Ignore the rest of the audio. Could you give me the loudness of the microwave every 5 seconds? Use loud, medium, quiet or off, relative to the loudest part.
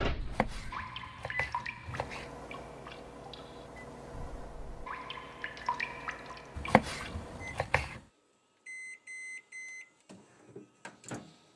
loud, loud, medium.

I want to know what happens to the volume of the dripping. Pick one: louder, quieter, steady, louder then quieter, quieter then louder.
quieter then louder.